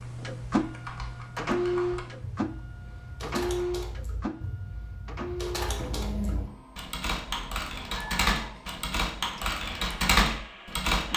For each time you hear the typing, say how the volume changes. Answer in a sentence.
The typing can be heard from 0.0 to 11.1 s, getting louder.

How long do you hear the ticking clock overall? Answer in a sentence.
You can't hear the ticking clock here.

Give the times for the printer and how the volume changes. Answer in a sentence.
The printer can be heard from 0.0 to 11.1 s, getting quieter.